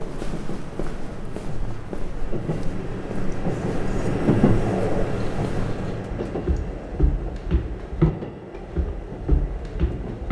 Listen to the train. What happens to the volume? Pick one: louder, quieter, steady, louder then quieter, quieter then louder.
louder then quieter.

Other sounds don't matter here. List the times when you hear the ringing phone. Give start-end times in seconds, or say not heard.
5.0-6.0.